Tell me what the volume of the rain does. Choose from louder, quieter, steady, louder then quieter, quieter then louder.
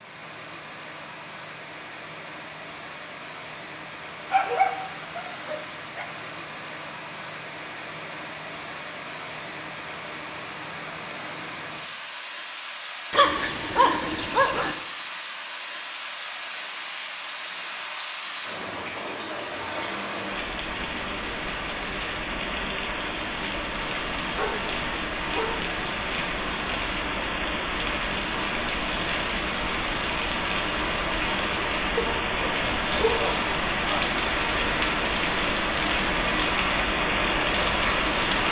louder.